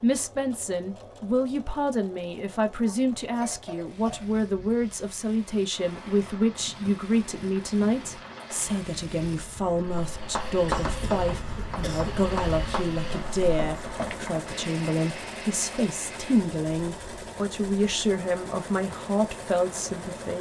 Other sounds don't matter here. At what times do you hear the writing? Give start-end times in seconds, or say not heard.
10.2-14.5.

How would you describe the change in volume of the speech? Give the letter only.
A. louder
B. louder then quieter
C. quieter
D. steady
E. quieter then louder
D.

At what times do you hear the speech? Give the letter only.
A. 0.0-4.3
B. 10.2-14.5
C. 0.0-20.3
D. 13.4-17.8
C.